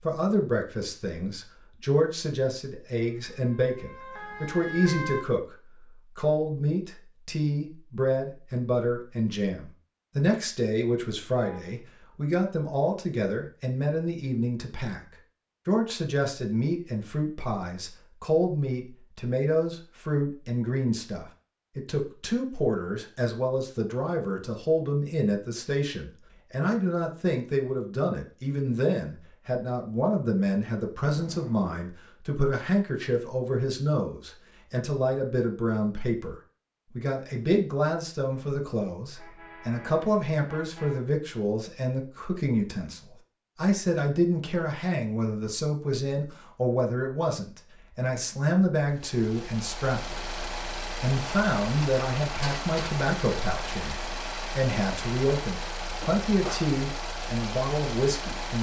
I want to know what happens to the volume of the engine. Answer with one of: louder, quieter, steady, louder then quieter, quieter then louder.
steady.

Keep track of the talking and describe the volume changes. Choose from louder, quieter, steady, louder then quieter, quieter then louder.
steady.